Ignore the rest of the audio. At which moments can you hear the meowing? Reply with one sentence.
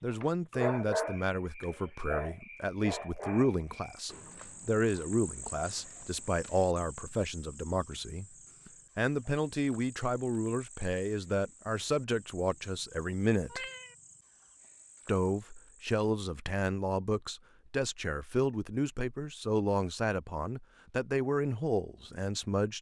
You can hear the meowing from 13.5 to 13.9 s.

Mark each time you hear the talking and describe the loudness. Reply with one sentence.
The talking can be heard from 0.0 to 13.7 s, at a steady volume; and from 15.1 to 22.7 s, at a steady volume.